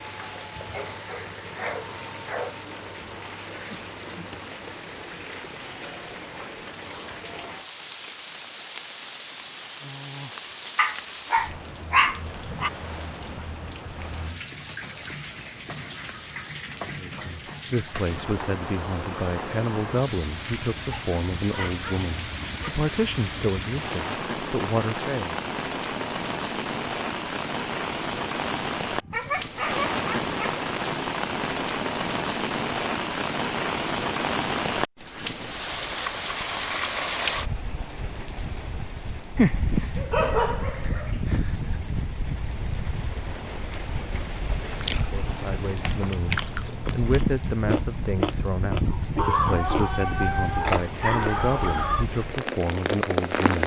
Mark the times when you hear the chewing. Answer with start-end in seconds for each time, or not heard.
44.6-51.4.